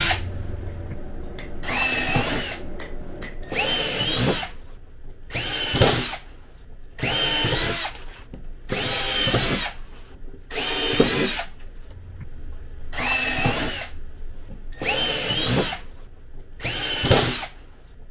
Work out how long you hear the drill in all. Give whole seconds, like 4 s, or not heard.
18 s.